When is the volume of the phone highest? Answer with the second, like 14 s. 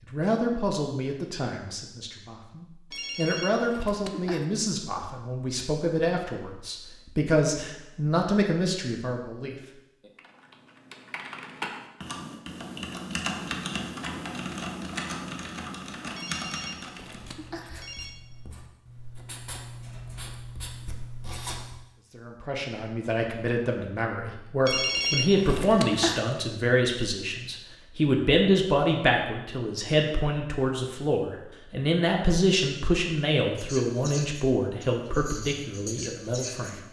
25 s.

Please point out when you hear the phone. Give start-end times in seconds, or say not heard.
2.9-4.5, 16.1-18.1, 24.6-26.2.